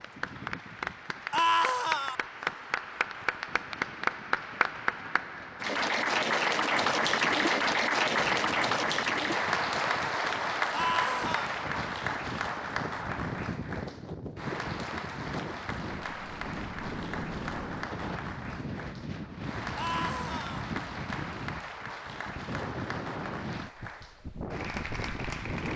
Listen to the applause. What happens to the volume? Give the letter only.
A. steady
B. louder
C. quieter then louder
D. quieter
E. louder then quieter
E.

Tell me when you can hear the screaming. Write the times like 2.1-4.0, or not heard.
1.3-2.1, 10.7-11.5, 19.8-20.6.